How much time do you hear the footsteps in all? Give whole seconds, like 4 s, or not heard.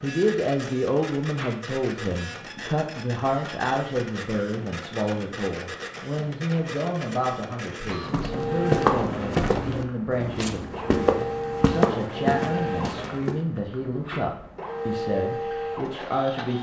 5 s.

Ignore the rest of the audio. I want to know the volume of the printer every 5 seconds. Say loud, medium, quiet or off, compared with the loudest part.
medium, loud, loud, loud.